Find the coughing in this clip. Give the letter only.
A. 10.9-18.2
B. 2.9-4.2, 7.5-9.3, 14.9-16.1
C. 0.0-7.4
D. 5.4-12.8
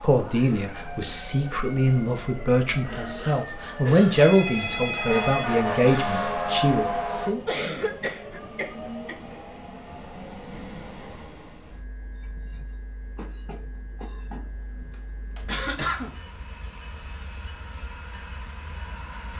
B.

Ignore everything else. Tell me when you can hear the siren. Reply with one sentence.
The siren can be heard from 0.1 to 7.3 s.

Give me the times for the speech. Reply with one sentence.
The speech can be heard from 0.0 to 7.4 s.